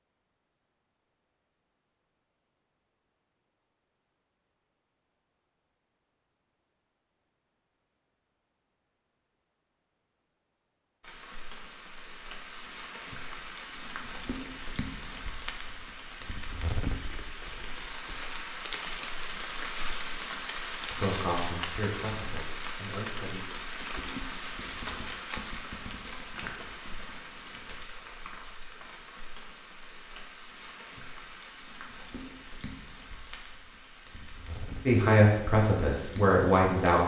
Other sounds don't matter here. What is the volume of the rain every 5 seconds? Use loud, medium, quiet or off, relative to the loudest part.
off, off, medium, loud, loud, medium, medium, medium.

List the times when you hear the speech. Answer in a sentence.
You can hear the speech from 20.8 to 23.6 s and from 34.9 to 37.0 s.